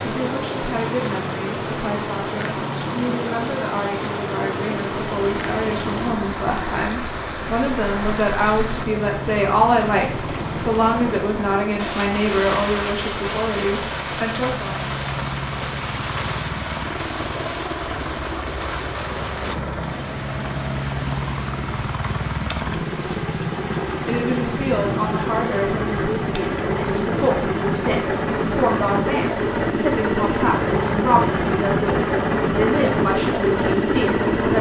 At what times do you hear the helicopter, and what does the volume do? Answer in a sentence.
The helicopter can be heard from 0.0 to 34.5 s, getting louder.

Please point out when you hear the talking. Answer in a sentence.
You can hear the talking from 0.0 to 14.8 s and from 24.1 to 34.5 s.